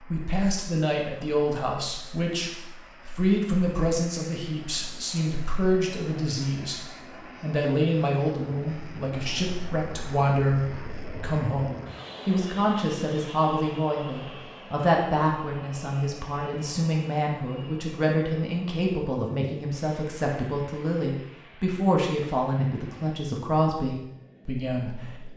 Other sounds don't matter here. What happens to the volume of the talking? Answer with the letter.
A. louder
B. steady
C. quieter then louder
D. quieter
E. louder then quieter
B.